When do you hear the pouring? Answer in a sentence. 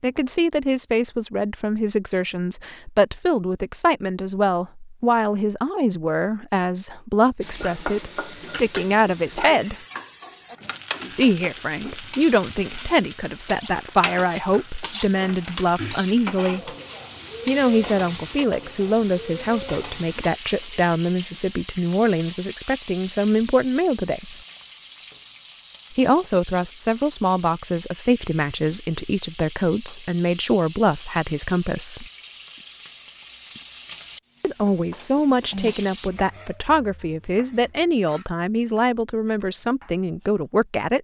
You can't hear the pouring here.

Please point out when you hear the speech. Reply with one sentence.
The speech can be heard from 0.0 to 9.8 s, from 11.1 to 16.7 s, from 17.4 to 24.4 s, from 25.9 to 32.0 s and from 34.4 to 40.9 s.